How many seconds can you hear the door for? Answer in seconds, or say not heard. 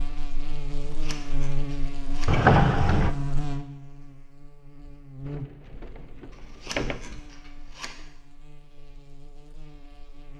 3 s.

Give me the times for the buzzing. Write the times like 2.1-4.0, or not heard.
0.0-10.3.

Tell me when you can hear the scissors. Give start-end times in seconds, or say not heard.
0.8-2.4, 6.3-8.0.